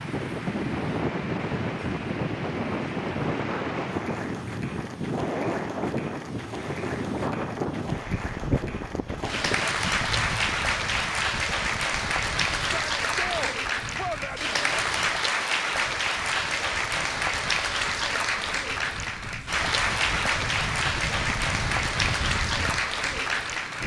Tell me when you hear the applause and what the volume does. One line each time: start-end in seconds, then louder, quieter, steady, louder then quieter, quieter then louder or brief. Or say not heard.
0.0-23.8 louder.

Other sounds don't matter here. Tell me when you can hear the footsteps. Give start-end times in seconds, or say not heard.
not heard.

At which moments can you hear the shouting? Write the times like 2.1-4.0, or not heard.
12.6-14.5.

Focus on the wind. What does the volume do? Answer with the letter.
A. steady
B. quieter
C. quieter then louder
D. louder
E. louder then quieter
C.